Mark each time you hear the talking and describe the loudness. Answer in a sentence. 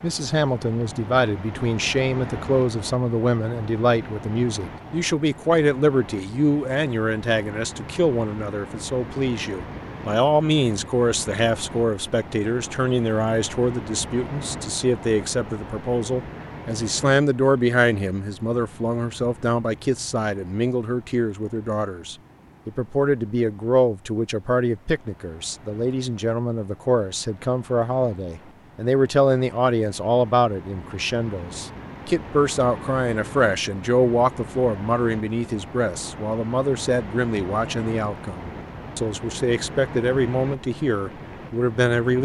You can hear the talking from 0.0 to 42.1 s, at a steady volume.